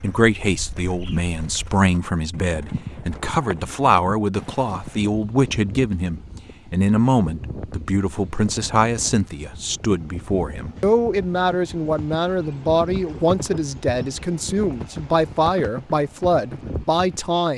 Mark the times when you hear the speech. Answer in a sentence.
You can hear the speech from 0.0 to 17.5 s.